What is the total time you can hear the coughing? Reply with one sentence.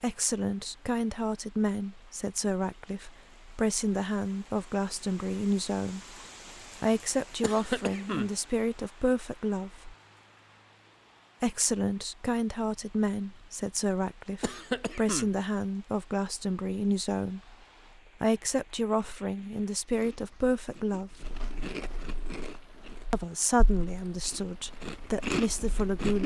You can hear the coughing for 2 seconds altogether.